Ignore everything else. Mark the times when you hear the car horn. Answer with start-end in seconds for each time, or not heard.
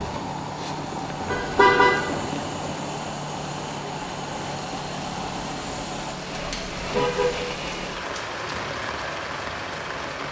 1.3-1.9, 6.3-7.4.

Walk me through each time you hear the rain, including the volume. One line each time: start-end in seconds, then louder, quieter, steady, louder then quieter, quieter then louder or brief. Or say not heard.
0.0-10.2 steady.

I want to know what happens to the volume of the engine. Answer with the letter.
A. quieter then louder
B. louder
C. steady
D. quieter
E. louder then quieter
C.